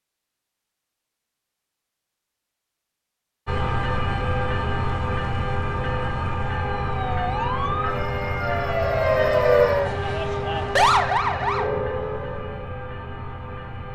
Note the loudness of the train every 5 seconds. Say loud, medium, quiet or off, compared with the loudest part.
loud, loud, medium.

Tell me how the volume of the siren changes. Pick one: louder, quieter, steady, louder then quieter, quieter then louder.
louder then quieter.